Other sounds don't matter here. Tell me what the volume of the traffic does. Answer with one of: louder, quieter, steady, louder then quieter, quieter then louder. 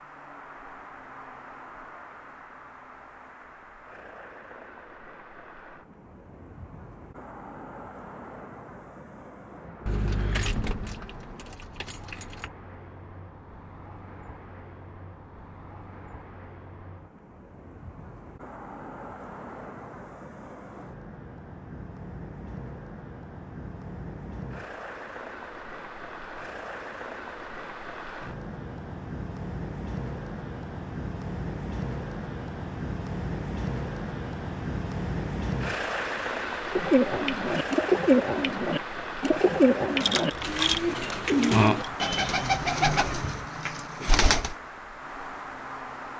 louder.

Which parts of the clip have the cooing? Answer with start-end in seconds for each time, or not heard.
36.7-44.5.